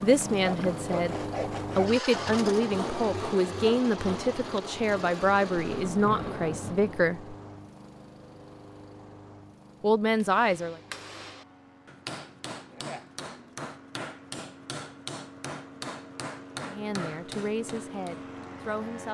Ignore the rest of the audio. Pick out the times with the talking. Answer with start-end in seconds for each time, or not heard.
0.0-1.1, 1.8-7.3, 9.8-10.8, 16.6-19.0.